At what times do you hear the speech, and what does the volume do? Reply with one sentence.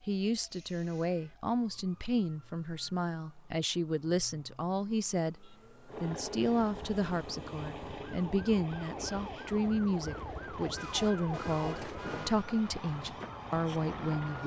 The speech can be heard from 0.1 to 14.4 s, at a steady volume.